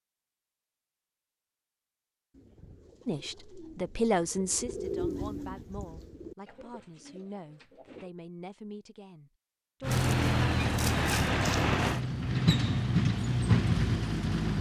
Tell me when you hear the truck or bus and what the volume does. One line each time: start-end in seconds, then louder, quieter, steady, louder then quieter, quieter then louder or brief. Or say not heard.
9.8-14.5 steady.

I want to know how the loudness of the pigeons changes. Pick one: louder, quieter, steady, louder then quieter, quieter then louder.
louder then quieter.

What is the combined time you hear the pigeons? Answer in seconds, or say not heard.
6 s.